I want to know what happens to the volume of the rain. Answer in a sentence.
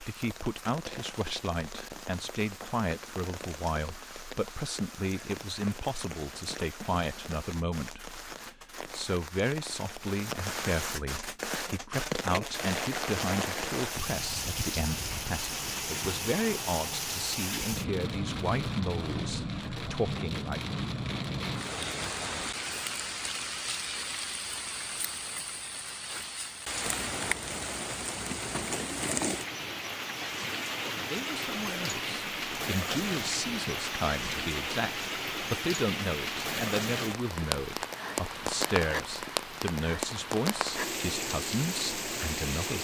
The volume of the rain goes up.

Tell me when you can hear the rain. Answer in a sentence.
The rain can be heard from 0.0 to 42.8 s.